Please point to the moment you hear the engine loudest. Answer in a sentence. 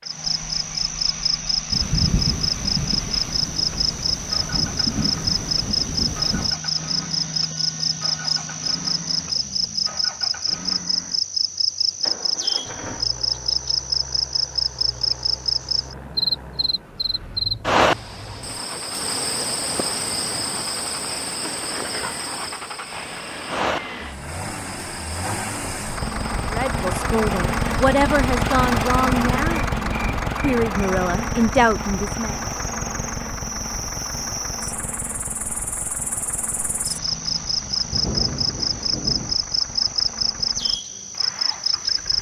The loudest moment of the engine is at 29 seconds.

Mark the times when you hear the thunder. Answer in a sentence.
The thunder can be heard from 1.7 to 6.5 s and from 37.9 to 39.4 s.